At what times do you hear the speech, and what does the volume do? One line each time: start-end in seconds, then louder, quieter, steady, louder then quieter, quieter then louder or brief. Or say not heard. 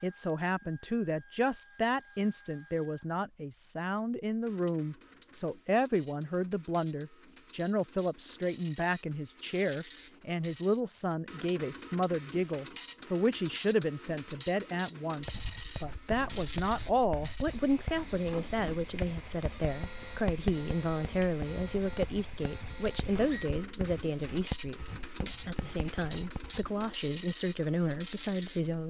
0.0-28.8 steady.